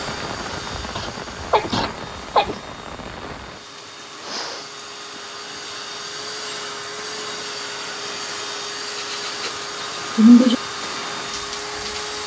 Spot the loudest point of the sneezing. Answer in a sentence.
The loudest moment of the sneezing is at 10 seconds.